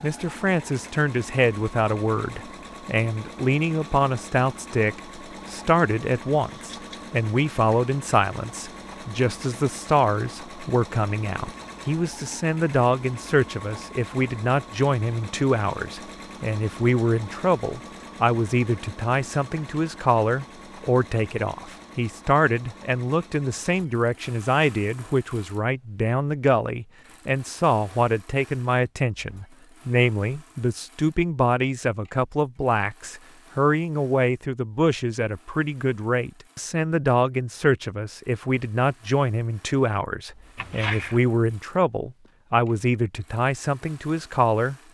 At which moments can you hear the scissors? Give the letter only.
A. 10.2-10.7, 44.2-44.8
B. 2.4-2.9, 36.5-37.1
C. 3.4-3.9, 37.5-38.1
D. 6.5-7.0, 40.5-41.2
D.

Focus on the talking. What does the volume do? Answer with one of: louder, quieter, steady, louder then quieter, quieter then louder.
steady.